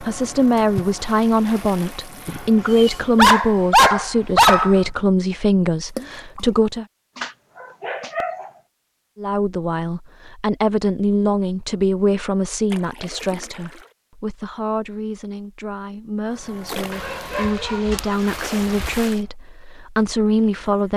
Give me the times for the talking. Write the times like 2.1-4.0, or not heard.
0.0-6.8, 9.2-20.9.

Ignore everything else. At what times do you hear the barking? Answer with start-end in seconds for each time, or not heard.
2.2-4.8, 7.2-8.5, 16.9-19.0.